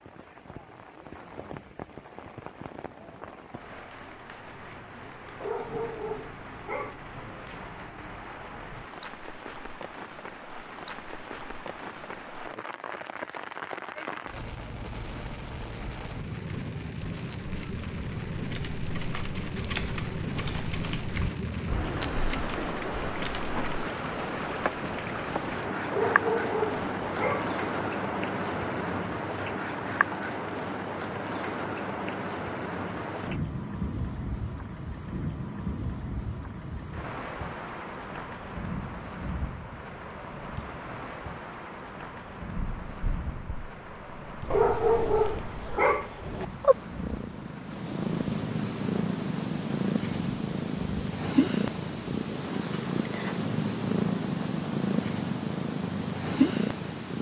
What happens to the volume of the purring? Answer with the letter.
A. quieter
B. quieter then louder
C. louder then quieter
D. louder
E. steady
D.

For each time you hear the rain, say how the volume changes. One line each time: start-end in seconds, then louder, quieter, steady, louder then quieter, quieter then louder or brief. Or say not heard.
0.0-57.1 louder then quieter.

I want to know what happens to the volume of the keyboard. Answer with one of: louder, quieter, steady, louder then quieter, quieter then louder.
louder then quieter.